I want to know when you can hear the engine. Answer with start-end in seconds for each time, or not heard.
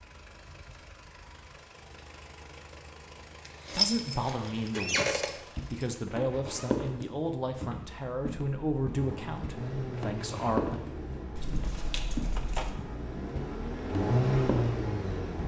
0.0-15.4.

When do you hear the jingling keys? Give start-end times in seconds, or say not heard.
3.5-5.8, 11.3-12.8.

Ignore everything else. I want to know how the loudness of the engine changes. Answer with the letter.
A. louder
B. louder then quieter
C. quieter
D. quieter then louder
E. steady
A.